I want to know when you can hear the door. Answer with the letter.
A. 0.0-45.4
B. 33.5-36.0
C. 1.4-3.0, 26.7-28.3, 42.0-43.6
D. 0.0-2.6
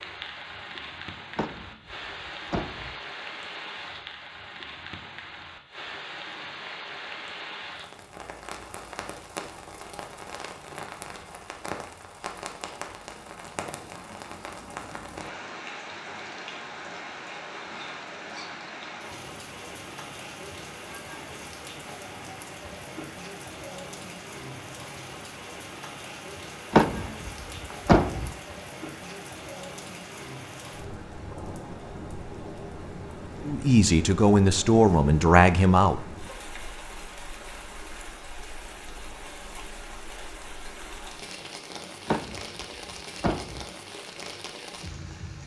C.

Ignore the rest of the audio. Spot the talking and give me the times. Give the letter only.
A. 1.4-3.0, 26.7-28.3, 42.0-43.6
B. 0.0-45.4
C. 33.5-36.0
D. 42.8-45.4
C.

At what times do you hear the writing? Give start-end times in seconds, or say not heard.
not heard.